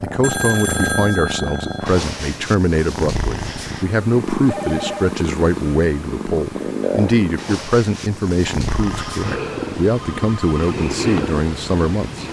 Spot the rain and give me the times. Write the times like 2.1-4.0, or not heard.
not heard.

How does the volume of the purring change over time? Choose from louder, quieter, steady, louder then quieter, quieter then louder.
steady.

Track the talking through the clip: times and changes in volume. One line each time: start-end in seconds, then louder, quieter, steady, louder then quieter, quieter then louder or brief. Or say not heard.
0.0-12.2 steady.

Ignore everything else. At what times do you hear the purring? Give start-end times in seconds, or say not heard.
0.0-12.2.